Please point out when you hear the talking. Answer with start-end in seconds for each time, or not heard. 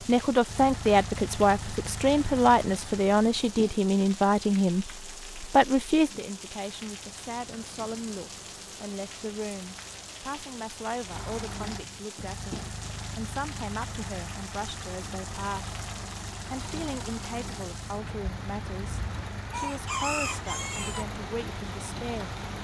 0.1-15.8, 16.5-22.4.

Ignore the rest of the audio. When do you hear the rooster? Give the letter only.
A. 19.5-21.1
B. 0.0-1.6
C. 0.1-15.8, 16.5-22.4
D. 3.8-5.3
A.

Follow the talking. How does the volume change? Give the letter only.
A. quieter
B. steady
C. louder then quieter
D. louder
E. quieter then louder
A.